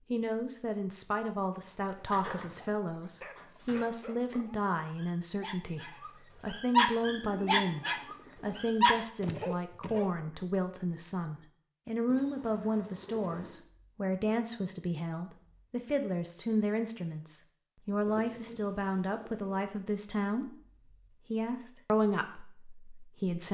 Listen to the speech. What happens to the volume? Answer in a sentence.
The loudness of the speech stays about the same.